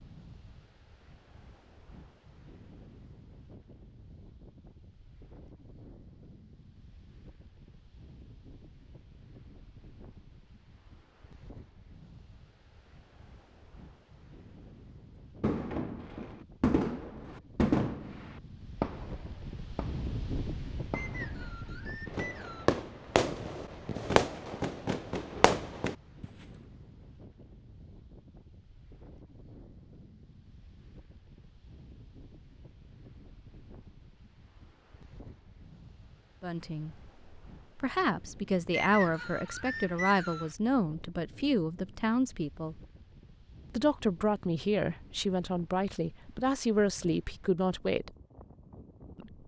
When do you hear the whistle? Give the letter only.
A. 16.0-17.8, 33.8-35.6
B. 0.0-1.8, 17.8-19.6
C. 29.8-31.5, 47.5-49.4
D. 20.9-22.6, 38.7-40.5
D.